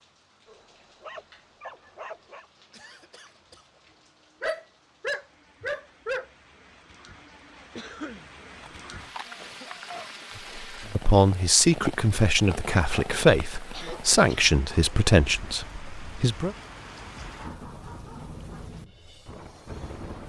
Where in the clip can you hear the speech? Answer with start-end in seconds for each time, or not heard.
10.6-16.6.